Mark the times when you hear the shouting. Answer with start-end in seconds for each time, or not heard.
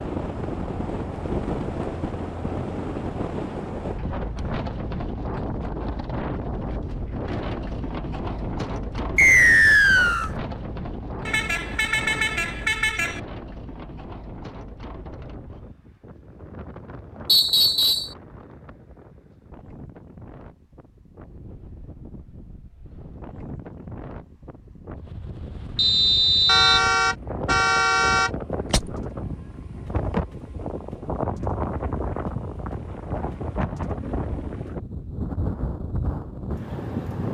not heard.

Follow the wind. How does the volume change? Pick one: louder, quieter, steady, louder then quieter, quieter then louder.
quieter then louder.